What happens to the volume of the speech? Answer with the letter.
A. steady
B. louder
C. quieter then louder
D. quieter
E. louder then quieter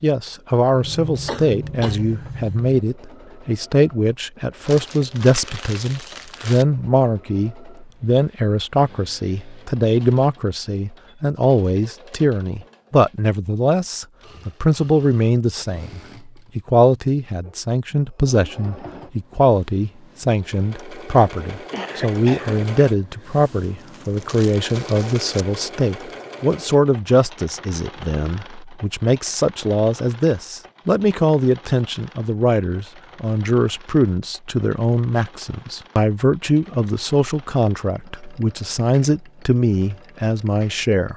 A.